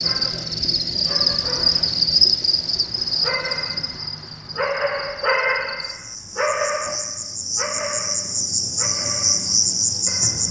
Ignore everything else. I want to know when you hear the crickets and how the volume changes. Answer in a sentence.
You can hear the crickets from 0.0 to 10.4 s, getting quieter then louder.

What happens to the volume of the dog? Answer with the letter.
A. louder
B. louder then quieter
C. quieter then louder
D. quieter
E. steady
B.